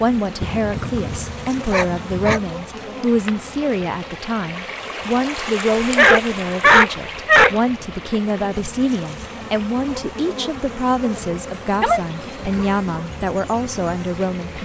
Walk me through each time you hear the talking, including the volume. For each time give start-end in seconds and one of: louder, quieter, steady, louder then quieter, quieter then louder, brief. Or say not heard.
0.0-14.6 steady.